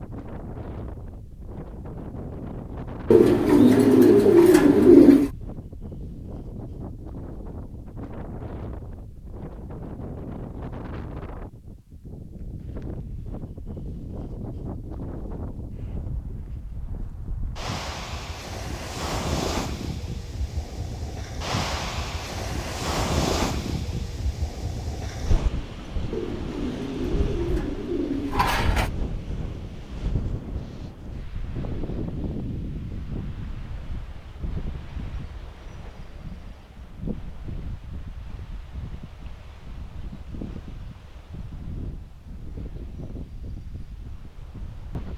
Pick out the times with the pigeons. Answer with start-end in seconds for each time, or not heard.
3.1-5.3, 26.1-28.9.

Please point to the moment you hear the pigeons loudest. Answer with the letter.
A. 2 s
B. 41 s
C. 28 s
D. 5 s
D.